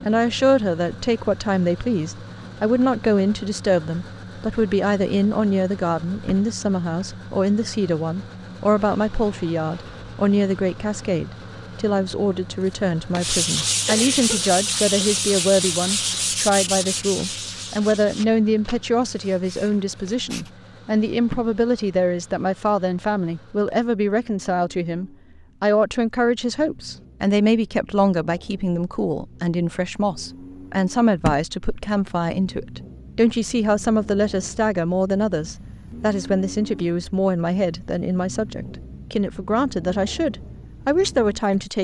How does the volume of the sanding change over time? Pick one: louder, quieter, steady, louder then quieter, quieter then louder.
quieter.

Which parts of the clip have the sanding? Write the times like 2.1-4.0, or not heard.
12.7-20.5.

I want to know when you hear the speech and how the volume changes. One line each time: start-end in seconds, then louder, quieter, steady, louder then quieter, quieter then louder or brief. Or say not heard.
0.0-41.7 steady.